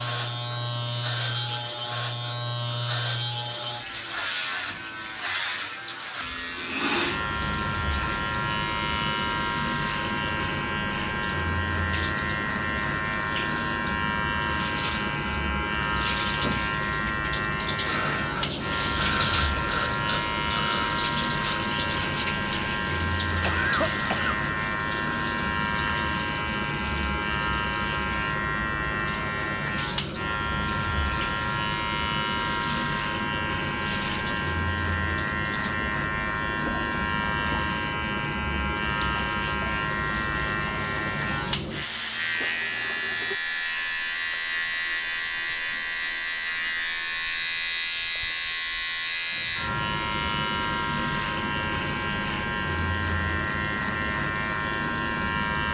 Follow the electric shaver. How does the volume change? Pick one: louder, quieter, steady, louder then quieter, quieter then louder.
steady.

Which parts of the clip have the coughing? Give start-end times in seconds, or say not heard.
23.4-24.4.